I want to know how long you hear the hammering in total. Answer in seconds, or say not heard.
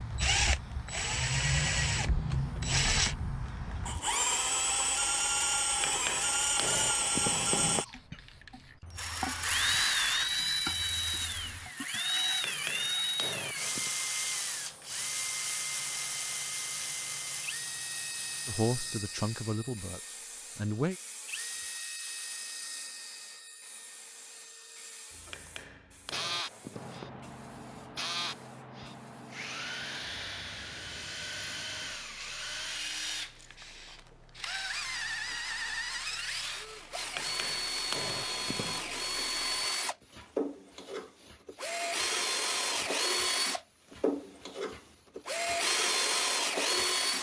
7 s.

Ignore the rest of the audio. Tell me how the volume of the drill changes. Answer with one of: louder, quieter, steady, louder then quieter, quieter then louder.
quieter then louder.